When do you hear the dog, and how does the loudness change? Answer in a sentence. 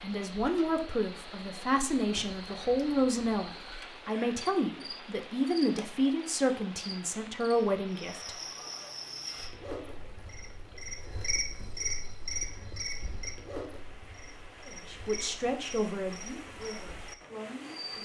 The dog can't be heard in this clip.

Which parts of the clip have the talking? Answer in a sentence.
The talking can be heard from 0.0 to 8.3 s and from 14.7 to 18.0 s.